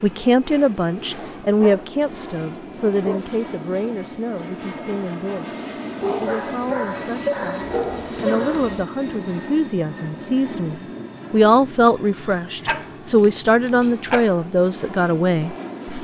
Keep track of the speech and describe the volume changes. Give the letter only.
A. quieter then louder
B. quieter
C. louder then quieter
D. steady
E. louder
A.